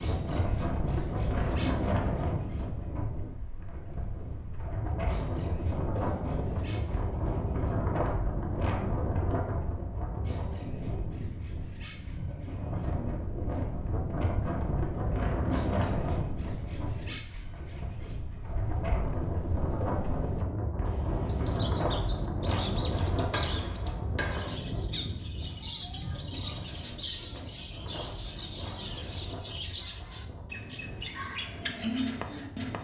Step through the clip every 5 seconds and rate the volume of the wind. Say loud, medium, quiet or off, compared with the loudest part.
loud, loud, loud, loud, loud, medium, quiet.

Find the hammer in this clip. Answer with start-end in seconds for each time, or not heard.
22.9-24.6.